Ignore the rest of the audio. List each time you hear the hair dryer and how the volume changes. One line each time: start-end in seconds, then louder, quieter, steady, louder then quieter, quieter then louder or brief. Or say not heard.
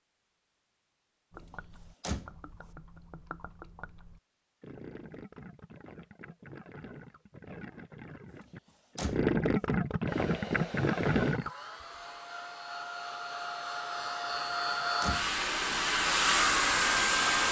10.1-17.4 louder.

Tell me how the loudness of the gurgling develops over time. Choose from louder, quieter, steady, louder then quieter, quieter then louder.
louder.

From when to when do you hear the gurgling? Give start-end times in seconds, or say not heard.
1.3-11.5.